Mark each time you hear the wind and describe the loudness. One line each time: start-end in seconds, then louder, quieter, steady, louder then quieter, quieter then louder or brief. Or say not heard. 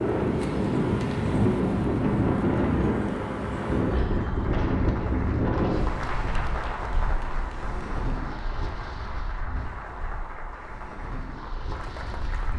0.0-12.5 quieter.